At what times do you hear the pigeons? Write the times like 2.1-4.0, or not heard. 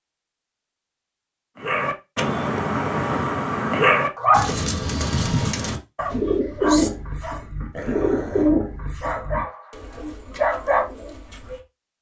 4.3-11.6.